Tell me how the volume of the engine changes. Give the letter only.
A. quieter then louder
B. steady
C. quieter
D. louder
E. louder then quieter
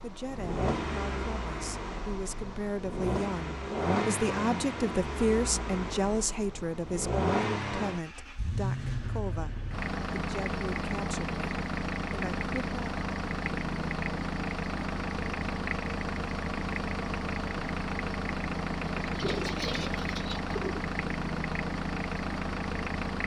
B.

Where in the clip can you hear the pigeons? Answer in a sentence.
You can hear the pigeons from 19.0 to 20.9 s.